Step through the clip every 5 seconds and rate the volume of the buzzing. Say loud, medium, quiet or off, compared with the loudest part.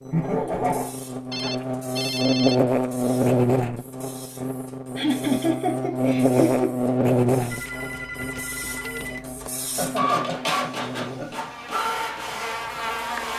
loud, loud, medium.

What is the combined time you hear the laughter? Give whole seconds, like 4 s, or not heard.
4 s.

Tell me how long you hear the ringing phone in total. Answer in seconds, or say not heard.
3 s.